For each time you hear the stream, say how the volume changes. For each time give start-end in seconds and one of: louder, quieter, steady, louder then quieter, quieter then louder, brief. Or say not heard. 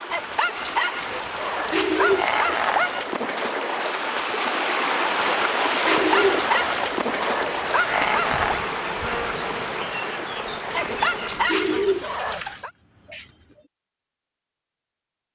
0.0-11.4 louder then quieter.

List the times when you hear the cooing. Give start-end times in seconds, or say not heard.
1.1-3.2, 5.2-8.1, 10.8-13.3.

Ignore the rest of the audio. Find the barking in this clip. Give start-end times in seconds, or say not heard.
0.1-3.0, 6.0-8.6, 10.7-12.7.